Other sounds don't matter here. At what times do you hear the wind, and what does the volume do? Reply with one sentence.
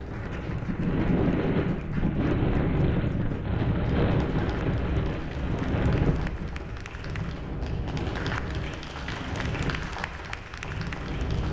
You can hear the wind from 0.0 to 11.4 s, getting quieter.